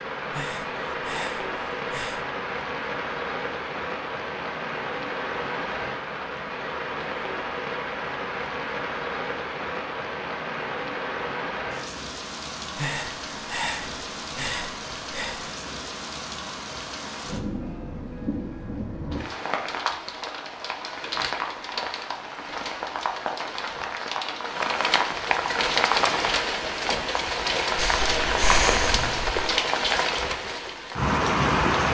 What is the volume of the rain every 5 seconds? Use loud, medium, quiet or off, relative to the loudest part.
medium, medium, medium, medium, medium, loud, loud.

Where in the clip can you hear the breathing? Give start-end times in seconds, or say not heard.
0.3-2.2, 12.8-15.6, 27.8-29.5.